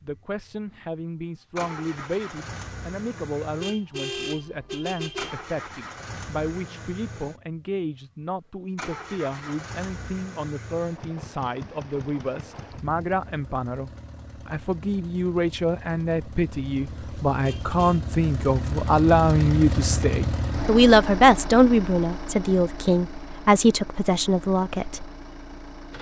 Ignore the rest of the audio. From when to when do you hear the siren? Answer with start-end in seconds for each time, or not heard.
not heard.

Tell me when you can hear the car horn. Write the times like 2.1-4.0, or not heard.
3.6-5.4, 17.4-18.1.